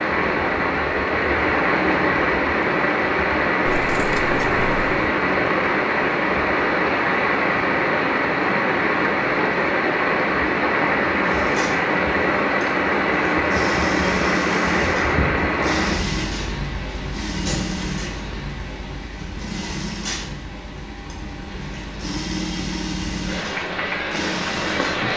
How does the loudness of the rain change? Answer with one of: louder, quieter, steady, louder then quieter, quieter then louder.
quieter.